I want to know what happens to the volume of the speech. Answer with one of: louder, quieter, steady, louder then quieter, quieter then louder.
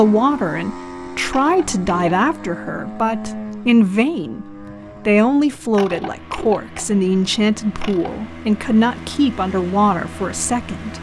steady.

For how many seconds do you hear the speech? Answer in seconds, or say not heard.
11 s.